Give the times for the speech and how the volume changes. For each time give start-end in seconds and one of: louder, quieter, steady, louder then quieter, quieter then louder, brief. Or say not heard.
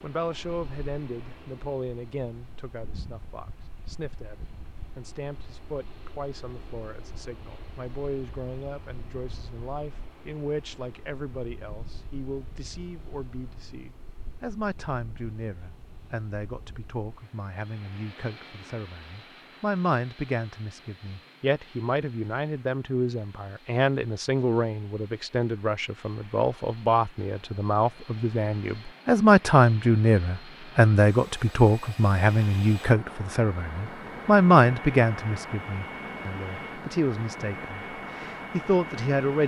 0.0-39.4 louder.